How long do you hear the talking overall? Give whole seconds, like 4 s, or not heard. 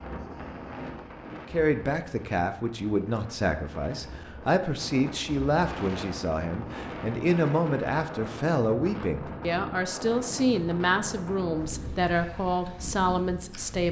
12 s.